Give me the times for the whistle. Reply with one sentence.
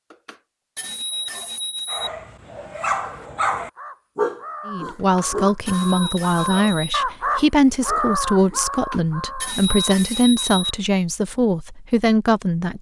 You can't hear the whistle here.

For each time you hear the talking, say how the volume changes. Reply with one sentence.
The talking can be heard from 4.7 to 12.7 s, at a steady volume.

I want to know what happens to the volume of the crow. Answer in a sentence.
The loudness of the crow goes up, then down.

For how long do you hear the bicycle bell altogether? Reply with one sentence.
The bicycle bell can be heard for 6 seconds in total.